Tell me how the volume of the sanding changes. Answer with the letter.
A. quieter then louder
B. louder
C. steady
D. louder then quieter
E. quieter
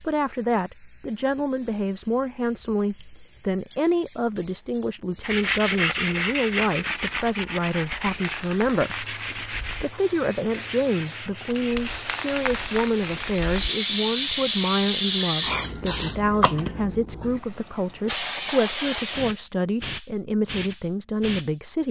E.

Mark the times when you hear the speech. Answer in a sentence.
The speech can be heard from 0.0 to 21.8 s.